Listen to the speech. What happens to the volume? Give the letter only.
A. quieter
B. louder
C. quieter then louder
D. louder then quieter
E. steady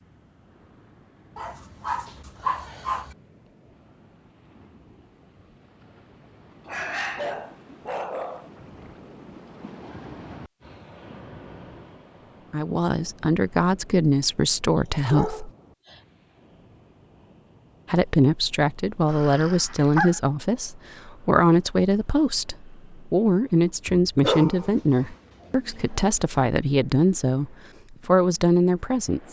E.